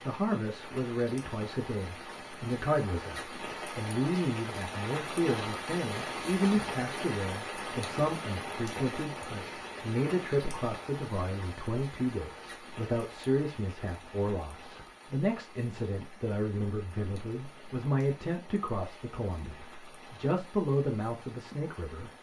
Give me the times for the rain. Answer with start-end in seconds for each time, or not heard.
0.0-22.1.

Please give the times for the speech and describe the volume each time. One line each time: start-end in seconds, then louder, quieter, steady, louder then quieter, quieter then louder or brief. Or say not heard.
0.1-22.1 steady.